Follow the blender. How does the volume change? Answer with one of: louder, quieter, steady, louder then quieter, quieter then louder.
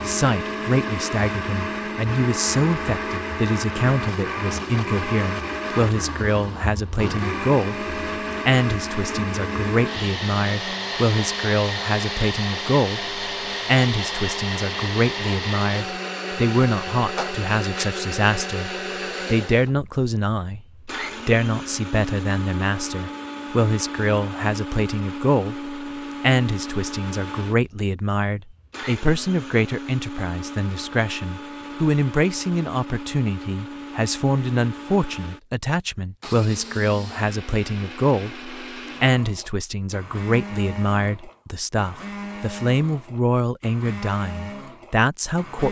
quieter.